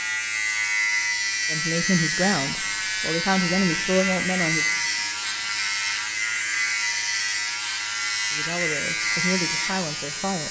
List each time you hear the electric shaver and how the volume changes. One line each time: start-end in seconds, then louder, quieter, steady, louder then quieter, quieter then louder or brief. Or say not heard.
0.0-10.4 steady.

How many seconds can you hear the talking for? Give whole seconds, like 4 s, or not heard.
5 s.